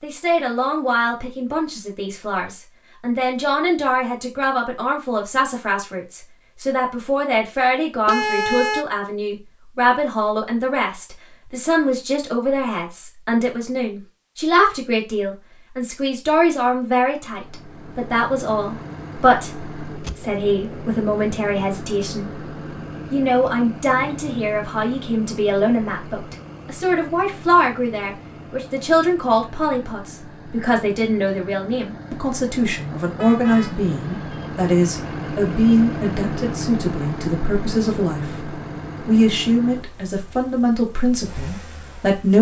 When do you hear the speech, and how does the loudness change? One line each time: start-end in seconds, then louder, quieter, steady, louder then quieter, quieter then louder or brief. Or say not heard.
0.0-22.3 steady
23.1-42.3 steady.